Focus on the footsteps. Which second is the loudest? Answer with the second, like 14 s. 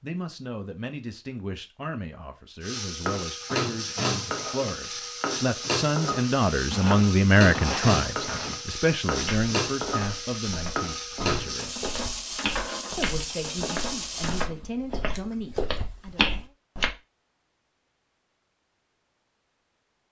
16 s.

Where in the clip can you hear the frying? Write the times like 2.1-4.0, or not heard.
2.6-14.5.